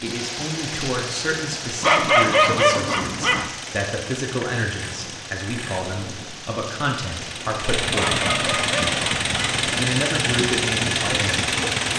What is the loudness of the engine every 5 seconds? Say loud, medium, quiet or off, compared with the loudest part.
quiet, loud, loud.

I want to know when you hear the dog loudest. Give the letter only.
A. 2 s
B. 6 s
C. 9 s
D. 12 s
A.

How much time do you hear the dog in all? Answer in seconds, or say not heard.
3 s.